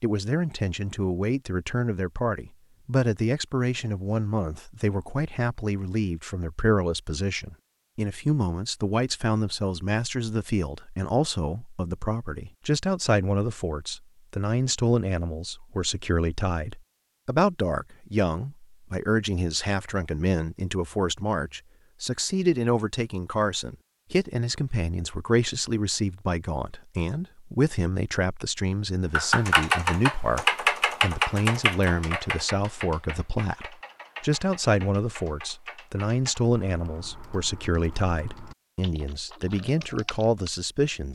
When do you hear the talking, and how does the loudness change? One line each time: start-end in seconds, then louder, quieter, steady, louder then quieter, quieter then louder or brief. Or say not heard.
0.0-41.1 steady.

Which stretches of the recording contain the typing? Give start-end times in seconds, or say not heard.
29.1-40.6.